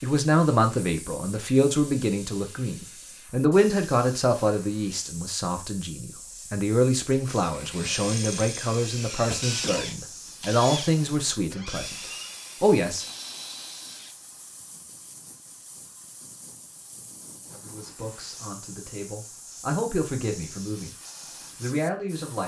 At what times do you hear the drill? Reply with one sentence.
The drill can be heard from 7.3 to 14.2 s.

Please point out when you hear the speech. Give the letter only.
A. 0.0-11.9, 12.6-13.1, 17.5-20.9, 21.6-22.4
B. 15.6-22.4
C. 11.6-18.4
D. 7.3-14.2
A.